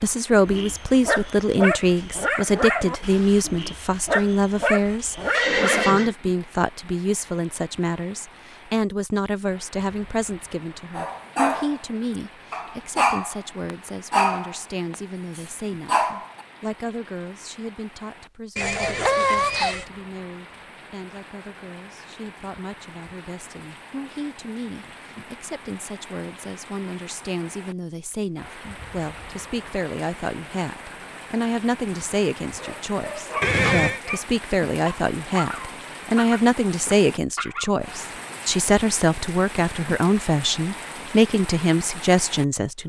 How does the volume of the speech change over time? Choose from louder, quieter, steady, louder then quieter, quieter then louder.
quieter then louder.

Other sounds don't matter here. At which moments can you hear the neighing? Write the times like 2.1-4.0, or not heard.
5.3-6.2, 18.6-19.9, 33.4-34.0.